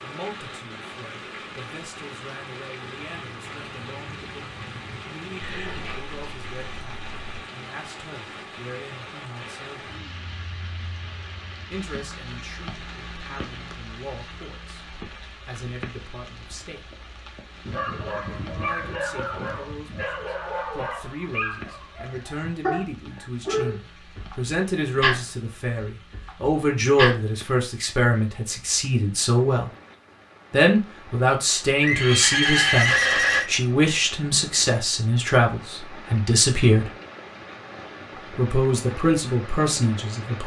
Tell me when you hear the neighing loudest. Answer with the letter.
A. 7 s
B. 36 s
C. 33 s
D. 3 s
C.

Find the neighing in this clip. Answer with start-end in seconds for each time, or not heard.
5.4-7.4, 31.8-33.5.